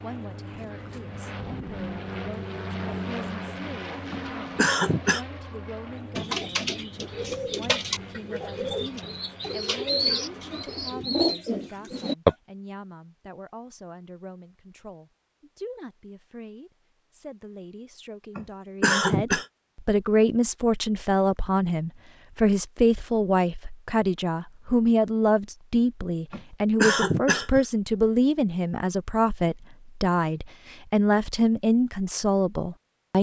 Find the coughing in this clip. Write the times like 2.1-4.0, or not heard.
4.1-5.2, 18.4-19.4, 26.3-27.6.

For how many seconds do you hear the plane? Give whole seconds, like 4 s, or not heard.
11 s.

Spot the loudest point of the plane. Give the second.
3 s.